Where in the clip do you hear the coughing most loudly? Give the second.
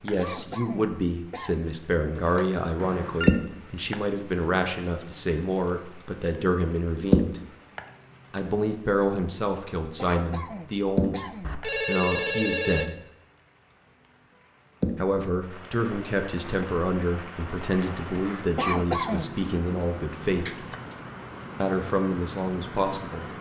19 s.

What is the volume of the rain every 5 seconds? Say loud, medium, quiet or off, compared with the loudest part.
loud, loud, loud, medium, medium.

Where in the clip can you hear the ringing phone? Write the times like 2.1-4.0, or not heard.
2.1-3.4, 11.4-12.8, 20.3-20.9.